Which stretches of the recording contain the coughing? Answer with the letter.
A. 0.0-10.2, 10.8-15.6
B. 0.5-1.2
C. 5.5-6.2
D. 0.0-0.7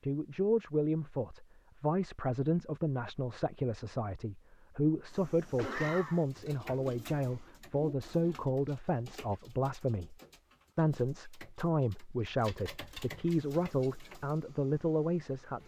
C.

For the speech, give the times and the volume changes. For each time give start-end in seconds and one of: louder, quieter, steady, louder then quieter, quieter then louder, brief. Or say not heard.
0.0-10.2 steady
10.8-15.6 steady.